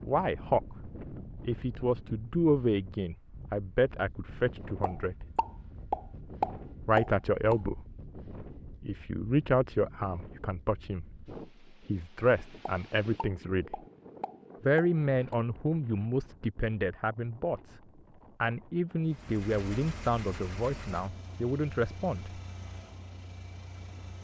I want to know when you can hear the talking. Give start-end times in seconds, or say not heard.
0.0-5.2, 6.8-7.8, 8.8-11.2, 11.8-13.8, 14.6-17.8, 18.4-22.3.